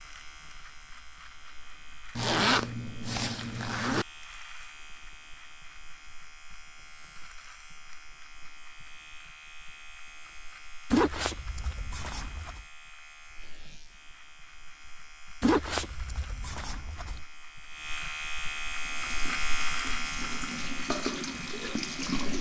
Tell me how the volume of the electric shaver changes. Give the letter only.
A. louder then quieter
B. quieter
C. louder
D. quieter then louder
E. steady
C.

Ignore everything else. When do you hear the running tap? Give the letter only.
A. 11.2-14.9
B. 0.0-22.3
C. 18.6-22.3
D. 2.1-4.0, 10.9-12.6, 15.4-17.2
C.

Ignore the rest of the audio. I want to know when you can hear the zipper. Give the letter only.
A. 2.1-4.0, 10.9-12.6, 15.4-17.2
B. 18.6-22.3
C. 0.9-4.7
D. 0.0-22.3
A.